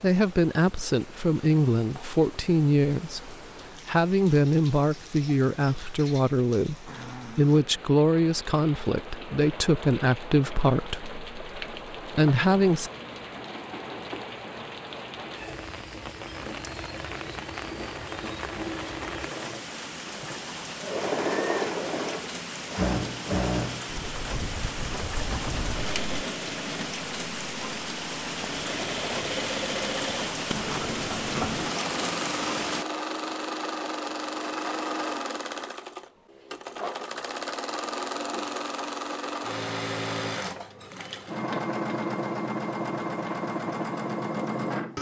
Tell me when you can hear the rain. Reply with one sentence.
You can hear the rain from 0.0 to 32.9 s.